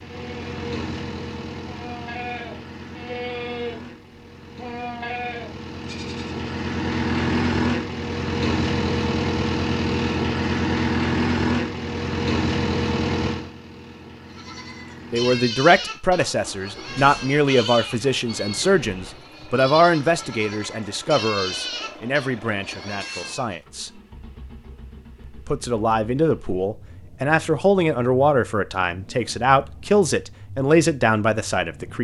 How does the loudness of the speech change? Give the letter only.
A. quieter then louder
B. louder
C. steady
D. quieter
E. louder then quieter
A.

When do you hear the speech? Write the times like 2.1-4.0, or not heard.
15.1-24.0, 25.2-31.9.